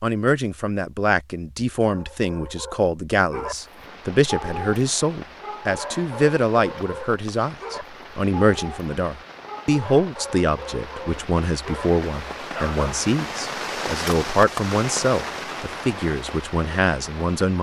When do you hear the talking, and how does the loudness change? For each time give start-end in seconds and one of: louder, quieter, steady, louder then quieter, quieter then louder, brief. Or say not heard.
0.0-17.5 steady.